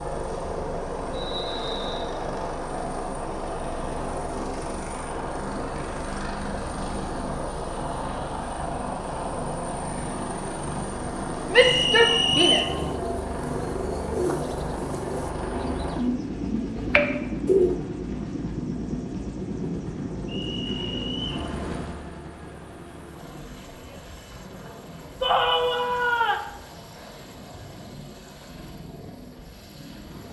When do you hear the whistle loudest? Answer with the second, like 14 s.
12 s.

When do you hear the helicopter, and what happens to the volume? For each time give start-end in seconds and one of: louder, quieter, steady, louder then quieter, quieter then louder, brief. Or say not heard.
0.0-30.2 quieter.